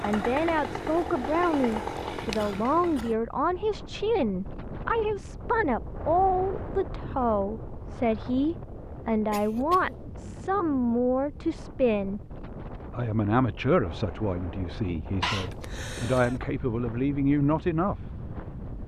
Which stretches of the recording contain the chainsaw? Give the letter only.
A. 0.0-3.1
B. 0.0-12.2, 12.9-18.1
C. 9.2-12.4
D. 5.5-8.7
A.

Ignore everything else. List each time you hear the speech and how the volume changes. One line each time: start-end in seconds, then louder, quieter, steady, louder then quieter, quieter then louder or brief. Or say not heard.
0.0-12.2 steady
12.9-18.1 quieter then louder.